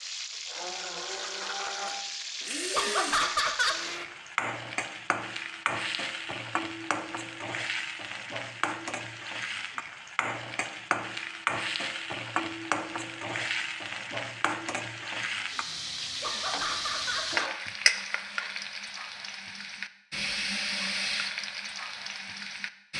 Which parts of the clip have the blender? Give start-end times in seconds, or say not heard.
0.0-4.0.